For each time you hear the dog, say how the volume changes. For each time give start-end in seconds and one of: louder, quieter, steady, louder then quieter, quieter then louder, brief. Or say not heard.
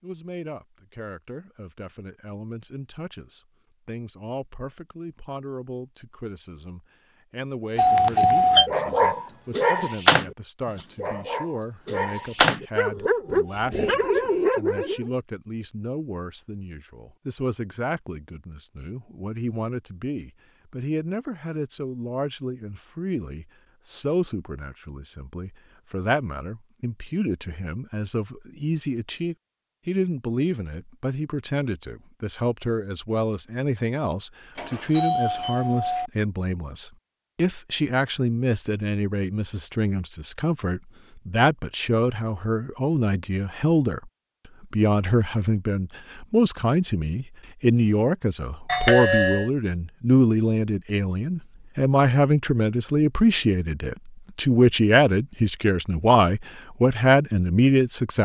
8.7-15.1 quieter then louder.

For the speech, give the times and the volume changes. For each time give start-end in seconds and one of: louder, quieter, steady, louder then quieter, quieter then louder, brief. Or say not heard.
0.0-58.2 louder.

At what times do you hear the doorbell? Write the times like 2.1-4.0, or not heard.
7.8-8.7, 34.5-36.1, 48.6-49.5.